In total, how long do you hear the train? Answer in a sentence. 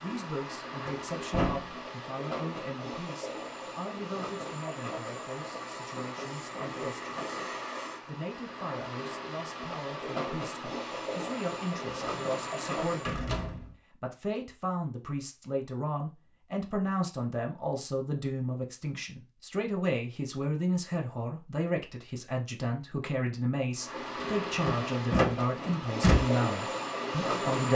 The train can be heard for 17 seconds in total.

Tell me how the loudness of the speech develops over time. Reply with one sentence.
The volume of the speech goes up.